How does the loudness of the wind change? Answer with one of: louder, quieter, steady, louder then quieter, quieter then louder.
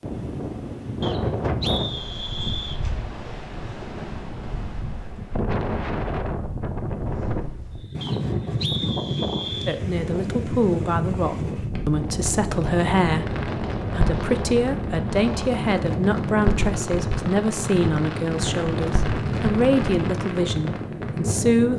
steady.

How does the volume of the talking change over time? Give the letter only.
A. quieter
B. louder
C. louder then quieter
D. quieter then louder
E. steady
E.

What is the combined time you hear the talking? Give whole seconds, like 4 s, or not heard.
12 s.